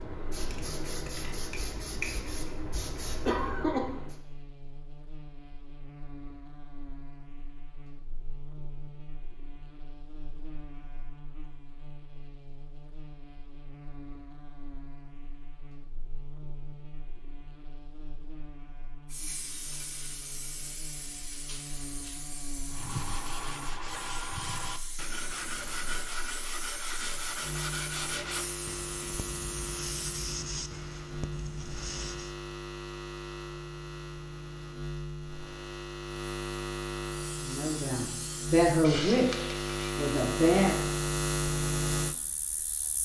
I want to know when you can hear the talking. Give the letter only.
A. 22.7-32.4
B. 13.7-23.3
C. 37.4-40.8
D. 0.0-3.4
C.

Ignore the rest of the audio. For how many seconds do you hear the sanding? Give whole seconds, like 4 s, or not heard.
10 s.